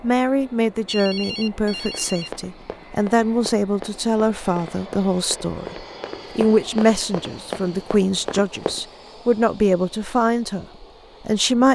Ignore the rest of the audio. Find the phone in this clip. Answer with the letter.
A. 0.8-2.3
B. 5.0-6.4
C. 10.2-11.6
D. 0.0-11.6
A.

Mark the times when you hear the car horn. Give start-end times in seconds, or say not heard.
not heard.